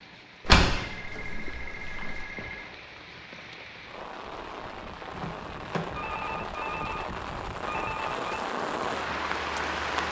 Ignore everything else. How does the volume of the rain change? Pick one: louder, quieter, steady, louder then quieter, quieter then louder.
louder.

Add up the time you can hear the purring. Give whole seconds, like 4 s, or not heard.
not heard.